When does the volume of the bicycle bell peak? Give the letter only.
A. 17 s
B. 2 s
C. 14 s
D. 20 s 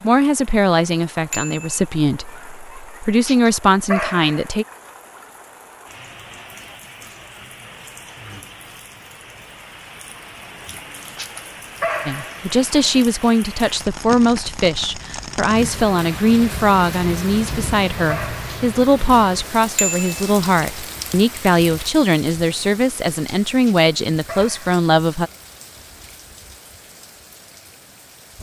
D.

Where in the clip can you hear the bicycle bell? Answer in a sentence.
The bicycle bell can be heard from 1.3 to 1.8 s and from 19.8 to 20.3 s.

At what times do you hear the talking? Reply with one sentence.
The talking can be heard from 0.0 to 4.7 s and from 12.1 to 25.3 s.